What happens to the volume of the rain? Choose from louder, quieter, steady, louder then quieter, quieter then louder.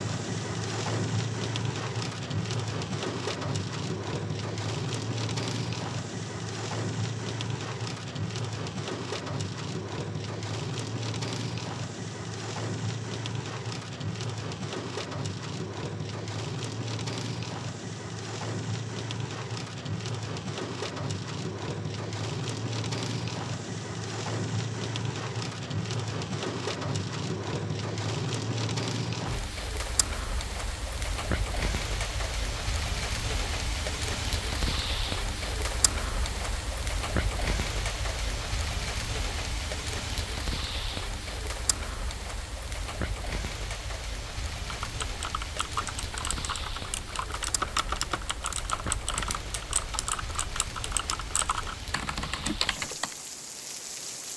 quieter.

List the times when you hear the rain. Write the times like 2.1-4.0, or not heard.
0.0-54.3.